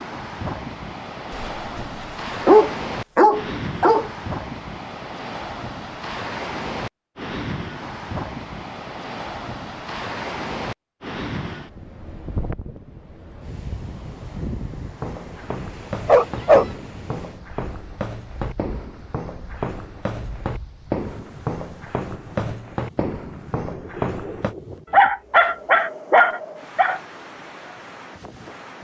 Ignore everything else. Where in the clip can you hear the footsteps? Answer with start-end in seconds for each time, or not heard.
15.0-24.6.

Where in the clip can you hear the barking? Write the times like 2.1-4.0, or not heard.
1.3-1.9, 2.5-4.1, 16.1-16.6, 24.9-27.0.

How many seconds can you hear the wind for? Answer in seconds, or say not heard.
29 s.